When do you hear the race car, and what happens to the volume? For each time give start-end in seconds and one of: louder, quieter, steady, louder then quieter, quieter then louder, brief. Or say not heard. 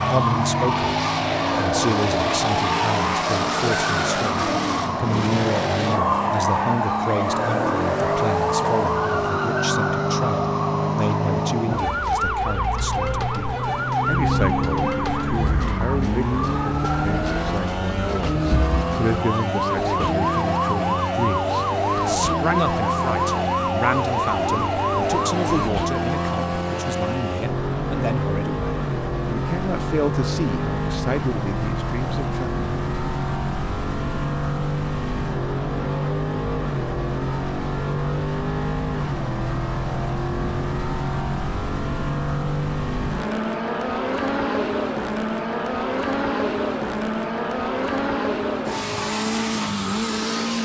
0.0-50.6 steady.